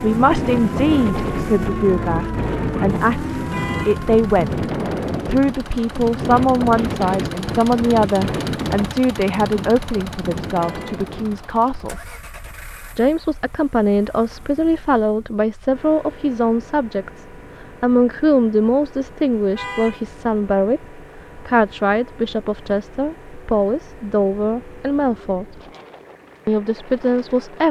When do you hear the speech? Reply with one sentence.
The speech can be heard from 0.0 to 4.7 s, from 5.2 to 12.0 s, from 12.9 to 25.6 s and from 26.4 to 27.6 s.